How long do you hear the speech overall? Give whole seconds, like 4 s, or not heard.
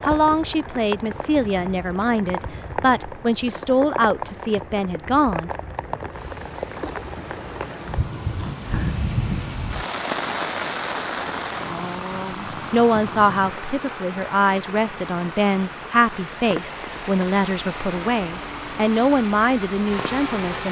13 s.